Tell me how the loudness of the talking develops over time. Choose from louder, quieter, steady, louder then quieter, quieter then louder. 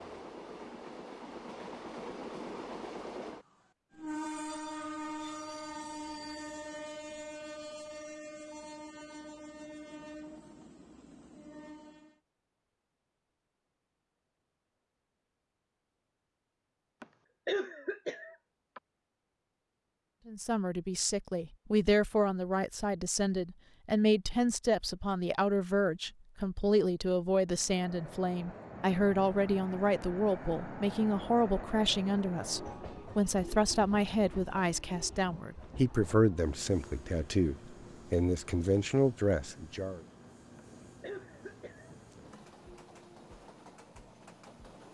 steady.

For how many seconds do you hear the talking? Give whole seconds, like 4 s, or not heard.
20 s.